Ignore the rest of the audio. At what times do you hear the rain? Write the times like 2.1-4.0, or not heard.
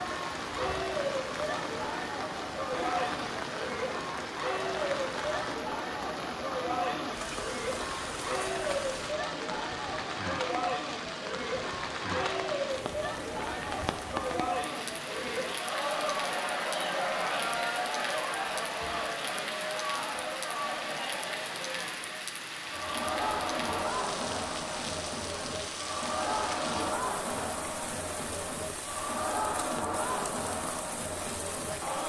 0.0-32.0.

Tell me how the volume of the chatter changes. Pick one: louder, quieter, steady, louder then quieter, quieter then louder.
steady.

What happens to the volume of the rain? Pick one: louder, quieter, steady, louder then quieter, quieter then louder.
steady.